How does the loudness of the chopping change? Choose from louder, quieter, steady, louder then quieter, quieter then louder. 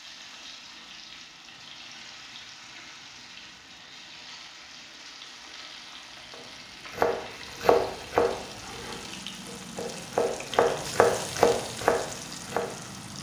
quieter then louder.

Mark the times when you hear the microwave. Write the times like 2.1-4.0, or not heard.
not heard.